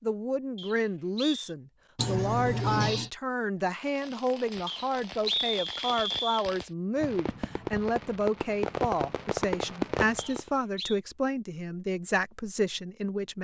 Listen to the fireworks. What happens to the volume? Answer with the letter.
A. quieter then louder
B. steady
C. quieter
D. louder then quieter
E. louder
E.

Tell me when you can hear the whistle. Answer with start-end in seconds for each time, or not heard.
0.6-1.4, 4.7-6.5, 10.2-11.0.